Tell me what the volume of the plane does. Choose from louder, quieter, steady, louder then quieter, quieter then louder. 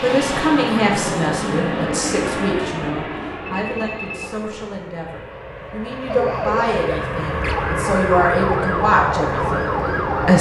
quieter then louder.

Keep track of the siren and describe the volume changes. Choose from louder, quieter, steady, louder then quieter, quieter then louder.
steady.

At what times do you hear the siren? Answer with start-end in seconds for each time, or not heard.
6.0-10.3.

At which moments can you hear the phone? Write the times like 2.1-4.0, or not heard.
3.5-4.3.